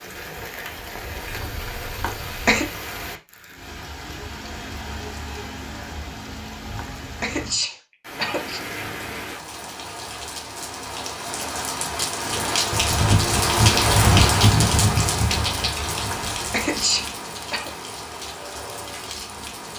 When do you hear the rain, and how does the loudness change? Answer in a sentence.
You can hear the rain from 0.0 to 19.7 s, getting louder then quieter.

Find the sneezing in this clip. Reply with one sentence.
You can hear the sneezing from 2.0 to 2.6 s, from 6.8 to 8.6 s and from 16.1 to 17.7 s.